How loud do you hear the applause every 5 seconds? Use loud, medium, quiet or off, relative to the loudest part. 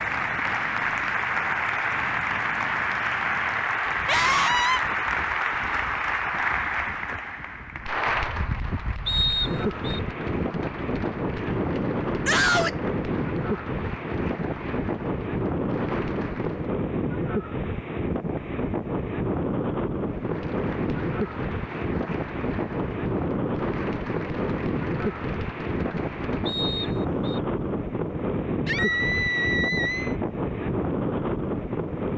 loud, loud, quiet, quiet, quiet, quiet, off.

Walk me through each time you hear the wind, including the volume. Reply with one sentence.
The wind can be heard from 0.0 to 32.1 s, getting louder.